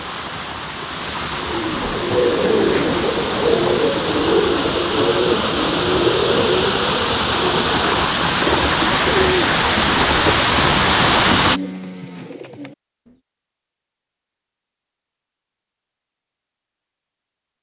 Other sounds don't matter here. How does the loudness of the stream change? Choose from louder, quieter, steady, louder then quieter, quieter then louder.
louder.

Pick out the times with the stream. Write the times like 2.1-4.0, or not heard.
0.0-11.6.